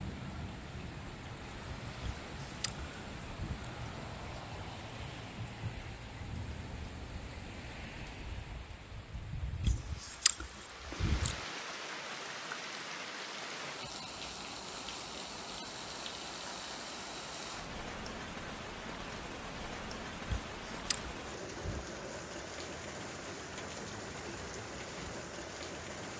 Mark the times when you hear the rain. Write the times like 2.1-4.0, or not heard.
0.0-26.1.